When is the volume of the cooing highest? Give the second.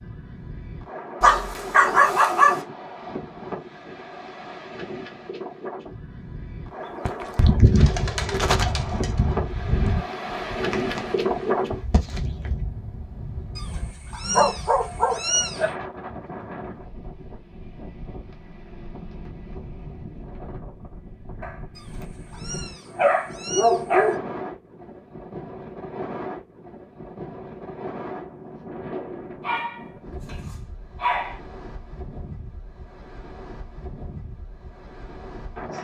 8 s.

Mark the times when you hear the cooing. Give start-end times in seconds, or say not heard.
7.0-12.5.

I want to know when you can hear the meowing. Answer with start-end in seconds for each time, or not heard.
13.6-15.7, 21.8-24.1.